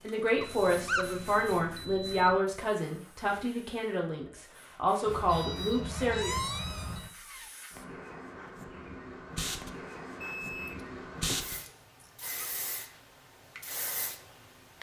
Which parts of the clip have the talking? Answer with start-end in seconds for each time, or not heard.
0.0-6.3.